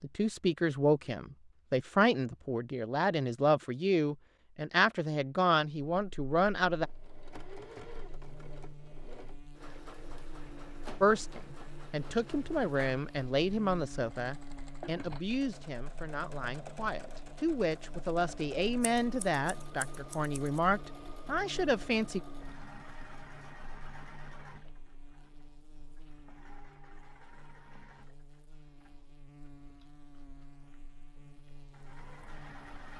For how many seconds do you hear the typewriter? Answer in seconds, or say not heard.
not heard.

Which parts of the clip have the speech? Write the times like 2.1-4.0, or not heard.
0.0-6.9, 11.0-22.2.